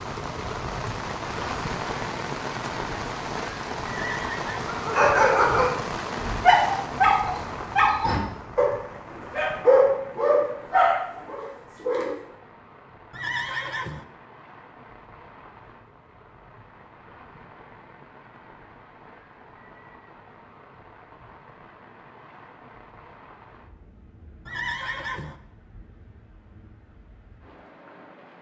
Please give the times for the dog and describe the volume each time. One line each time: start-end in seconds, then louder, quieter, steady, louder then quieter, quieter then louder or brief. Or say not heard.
4.7-12.2 steady.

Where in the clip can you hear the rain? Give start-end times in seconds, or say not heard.
0.0-28.3.